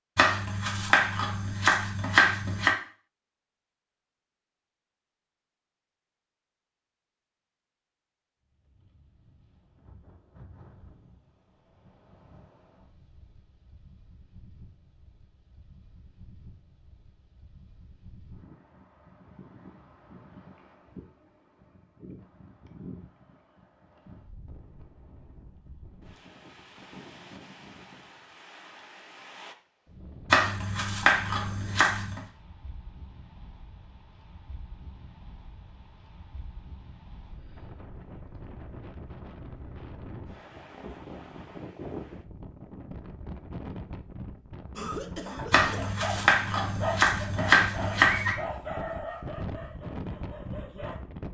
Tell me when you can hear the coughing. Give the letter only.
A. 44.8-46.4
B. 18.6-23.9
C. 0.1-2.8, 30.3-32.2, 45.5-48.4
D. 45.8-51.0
A.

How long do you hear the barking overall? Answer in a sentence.
You can hear the barking for 5 seconds altogether.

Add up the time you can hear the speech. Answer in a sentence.
You can't hear the speech here.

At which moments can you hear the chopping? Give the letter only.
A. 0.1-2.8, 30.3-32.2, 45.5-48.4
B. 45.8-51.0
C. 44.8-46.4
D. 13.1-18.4
A.